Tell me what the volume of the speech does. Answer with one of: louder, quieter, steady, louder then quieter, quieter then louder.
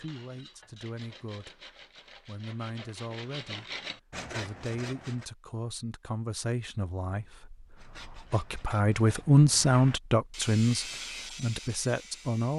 louder.